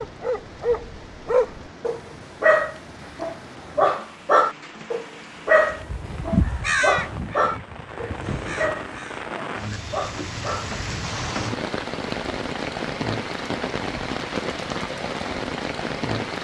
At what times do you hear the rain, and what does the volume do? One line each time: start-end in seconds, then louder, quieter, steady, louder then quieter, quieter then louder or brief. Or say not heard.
0.0-16.3 louder.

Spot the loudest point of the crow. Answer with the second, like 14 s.
7 s.